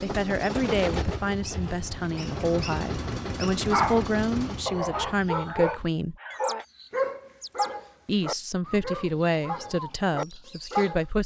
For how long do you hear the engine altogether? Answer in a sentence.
You can hear the engine for 5 seconds altogether.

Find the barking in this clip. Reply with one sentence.
The barking can be heard from 3.6 to 11.0 s.